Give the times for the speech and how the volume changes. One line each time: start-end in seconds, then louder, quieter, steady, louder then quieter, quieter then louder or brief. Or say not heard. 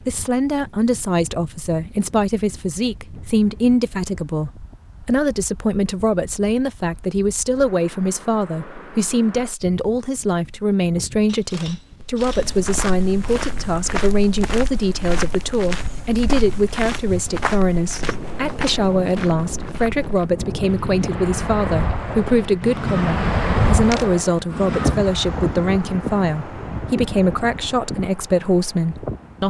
0.1-29.4 steady.